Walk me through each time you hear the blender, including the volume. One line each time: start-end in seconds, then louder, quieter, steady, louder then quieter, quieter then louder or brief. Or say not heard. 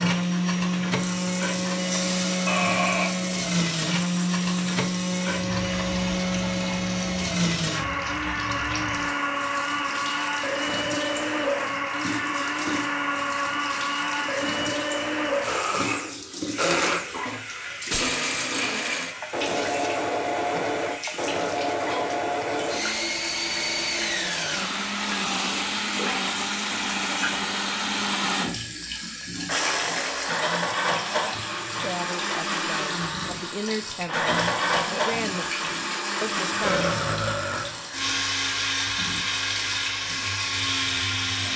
0.0-28.6 steady
29.4-41.5 steady.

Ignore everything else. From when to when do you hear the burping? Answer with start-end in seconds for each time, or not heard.
2.5-3.1, 20.5-21.6, 36.6-37.7.